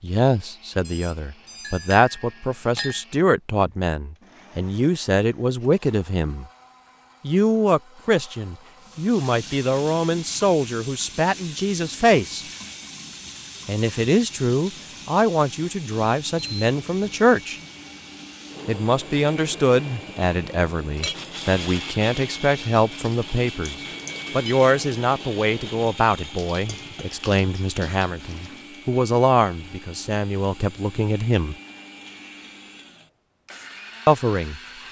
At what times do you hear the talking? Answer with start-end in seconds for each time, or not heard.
0.0-6.5, 7.2-12.4, 13.7-17.6, 18.6-31.6, 34.0-34.6.